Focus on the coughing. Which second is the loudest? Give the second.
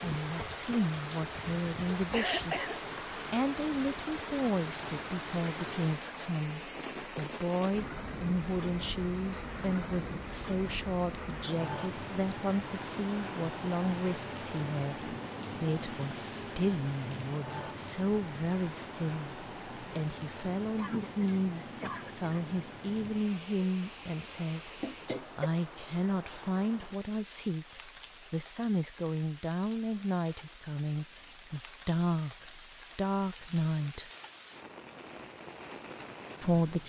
2 s.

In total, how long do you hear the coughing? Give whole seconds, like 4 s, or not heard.
3 s.